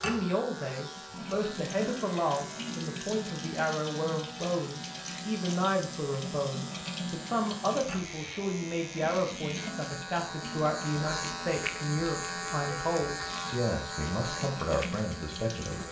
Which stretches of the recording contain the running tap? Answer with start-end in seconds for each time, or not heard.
0.0-15.8.